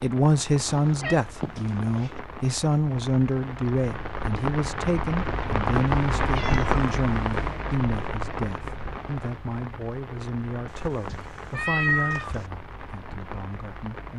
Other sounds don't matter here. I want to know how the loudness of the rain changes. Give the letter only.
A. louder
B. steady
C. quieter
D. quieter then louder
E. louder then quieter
E.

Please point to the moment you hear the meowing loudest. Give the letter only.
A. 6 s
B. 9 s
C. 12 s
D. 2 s
C.